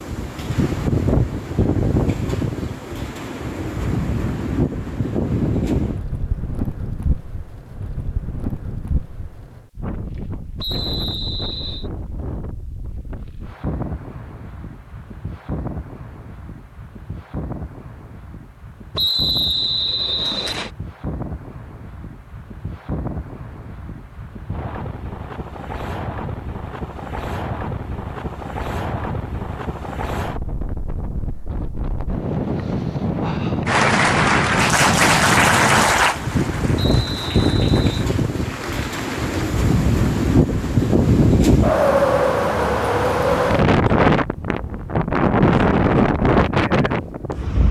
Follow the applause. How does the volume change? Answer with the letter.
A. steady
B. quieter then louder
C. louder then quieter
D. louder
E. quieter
E.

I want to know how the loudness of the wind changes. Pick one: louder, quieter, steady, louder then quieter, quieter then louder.
quieter then louder.